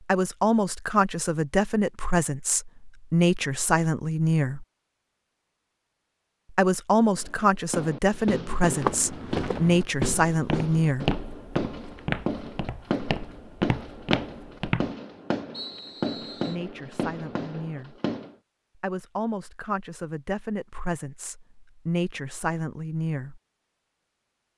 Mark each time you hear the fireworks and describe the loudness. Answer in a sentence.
You can hear the fireworks from 7.1 to 18.4 s, at a steady volume.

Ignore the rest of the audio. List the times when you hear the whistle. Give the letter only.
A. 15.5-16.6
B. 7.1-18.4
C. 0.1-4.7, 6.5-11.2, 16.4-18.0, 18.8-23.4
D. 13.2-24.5
A.